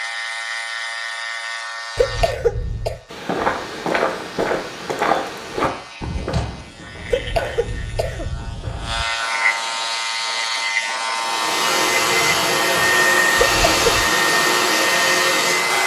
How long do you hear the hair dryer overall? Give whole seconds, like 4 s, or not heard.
5 s.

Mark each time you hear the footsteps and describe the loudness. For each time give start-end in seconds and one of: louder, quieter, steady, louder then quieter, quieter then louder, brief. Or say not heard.
3.1-8.9 quieter.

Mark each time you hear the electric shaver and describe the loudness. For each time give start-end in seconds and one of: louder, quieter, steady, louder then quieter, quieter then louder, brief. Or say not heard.
0.0-15.8 quieter then louder.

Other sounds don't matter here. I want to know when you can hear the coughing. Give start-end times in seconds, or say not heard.
1.9-3.0, 7.1-9.1, 13.3-14.1.